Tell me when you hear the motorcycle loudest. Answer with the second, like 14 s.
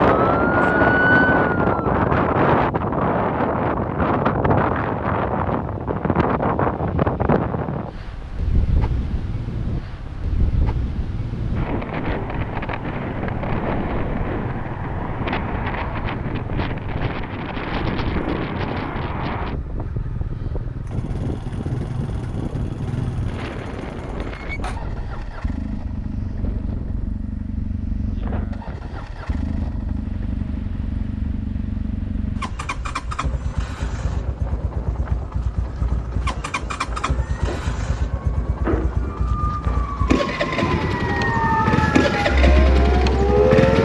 42 s.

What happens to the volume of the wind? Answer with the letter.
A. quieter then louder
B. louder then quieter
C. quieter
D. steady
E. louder
C.